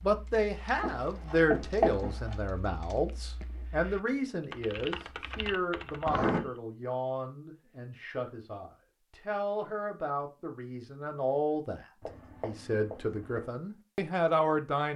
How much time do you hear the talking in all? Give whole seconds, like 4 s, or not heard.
15 s.